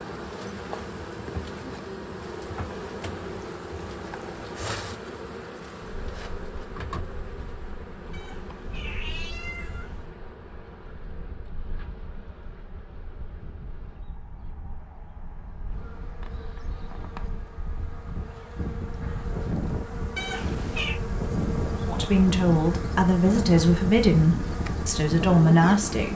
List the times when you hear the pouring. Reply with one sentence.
The pouring can be heard from 2.2 to 4.7 s.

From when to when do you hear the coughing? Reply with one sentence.
The coughing can't be heard in this clip.